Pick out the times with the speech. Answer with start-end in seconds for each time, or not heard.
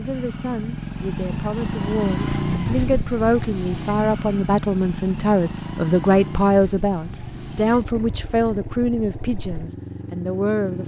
0.0-10.8.